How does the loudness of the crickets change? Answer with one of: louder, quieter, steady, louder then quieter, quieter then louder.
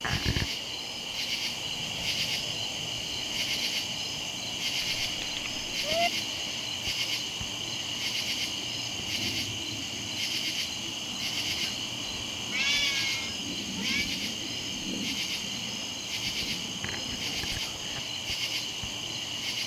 steady.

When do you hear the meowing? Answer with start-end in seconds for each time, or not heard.
4.8-6.1, 11.6-14.1.